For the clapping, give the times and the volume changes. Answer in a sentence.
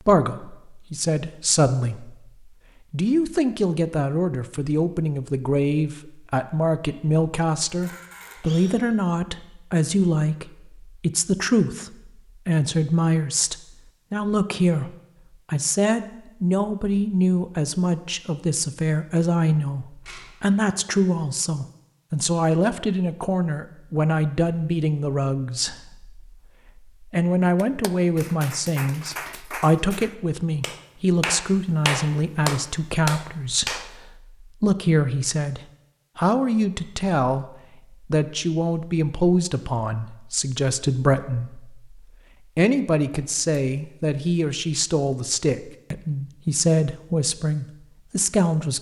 The clapping can be heard from 27.6 to 34.1 s, getting louder.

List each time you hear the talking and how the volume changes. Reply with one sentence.
You can hear the talking from 0.1 to 48.7 s, at a steady volume.